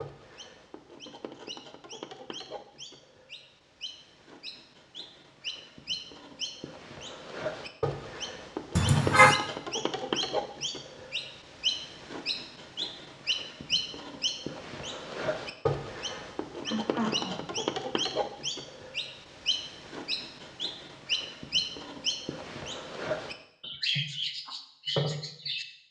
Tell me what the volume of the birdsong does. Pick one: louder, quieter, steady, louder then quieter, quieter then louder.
louder.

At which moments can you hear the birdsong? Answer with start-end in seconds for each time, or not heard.
0.0-25.6.